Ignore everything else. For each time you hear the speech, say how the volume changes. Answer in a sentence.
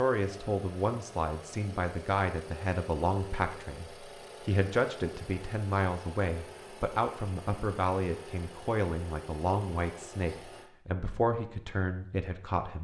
You can hear the speech from 0.0 to 12.8 s, at a steady volume.